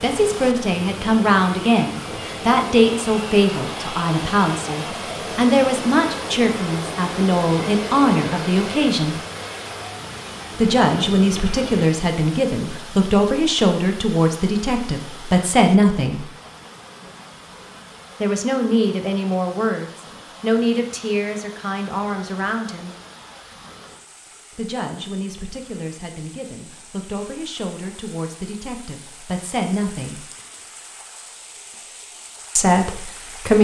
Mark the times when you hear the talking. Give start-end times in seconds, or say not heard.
0.0-9.2, 10.6-16.2, 18.2-22.9, 24.6-30.2, 32.5-33.5.